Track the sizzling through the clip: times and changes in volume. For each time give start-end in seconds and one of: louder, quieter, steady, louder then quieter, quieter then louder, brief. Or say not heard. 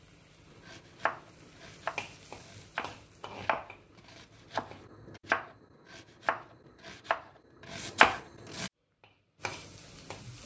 0.0-4.9 louder then quieter
8.8-10.4 brief.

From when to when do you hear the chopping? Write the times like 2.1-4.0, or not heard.
0.7-8.7.